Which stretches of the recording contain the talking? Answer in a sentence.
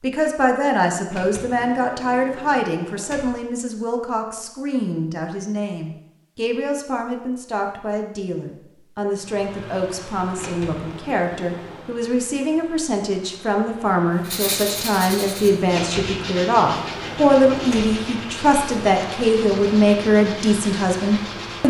You can hear the talking from 0.0 to 21.6 s.